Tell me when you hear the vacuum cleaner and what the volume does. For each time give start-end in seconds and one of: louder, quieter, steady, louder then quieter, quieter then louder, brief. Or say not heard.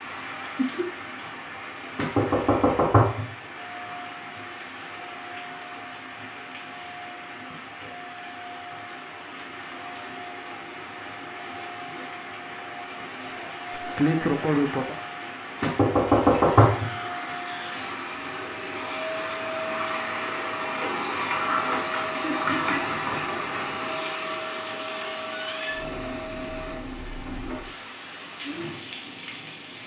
3.5-26.8 louder.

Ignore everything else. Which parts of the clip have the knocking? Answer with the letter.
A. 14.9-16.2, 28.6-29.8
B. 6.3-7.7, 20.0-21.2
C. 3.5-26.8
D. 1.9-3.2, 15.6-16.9
D.